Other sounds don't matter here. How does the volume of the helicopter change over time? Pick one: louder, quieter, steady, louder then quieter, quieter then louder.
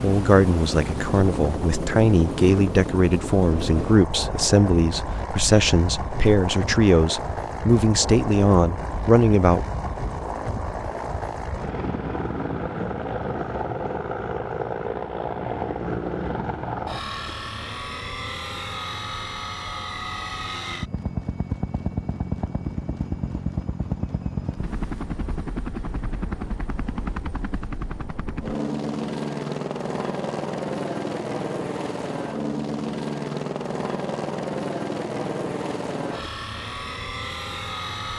steady.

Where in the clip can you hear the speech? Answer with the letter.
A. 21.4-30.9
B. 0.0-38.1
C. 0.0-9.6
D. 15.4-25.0
C.